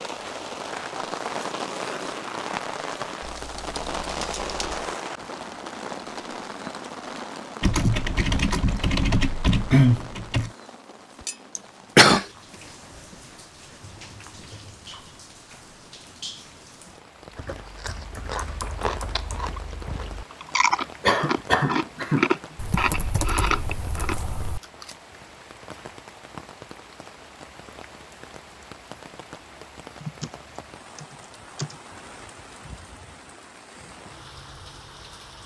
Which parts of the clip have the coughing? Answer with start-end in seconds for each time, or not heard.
11.6-12.2, 21.1-22.2.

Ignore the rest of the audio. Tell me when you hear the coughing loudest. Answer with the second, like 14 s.
12 s.